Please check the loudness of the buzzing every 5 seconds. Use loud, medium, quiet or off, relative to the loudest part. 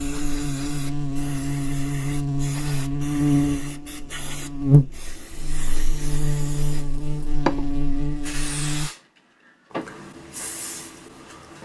loud, medium, off.